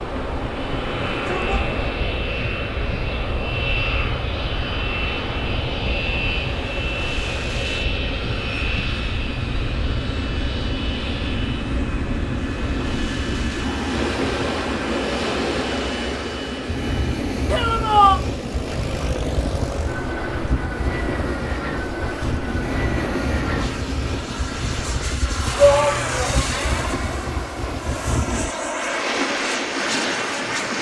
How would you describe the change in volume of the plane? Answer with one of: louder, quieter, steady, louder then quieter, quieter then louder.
steady.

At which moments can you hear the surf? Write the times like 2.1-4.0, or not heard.
0.0-30.7.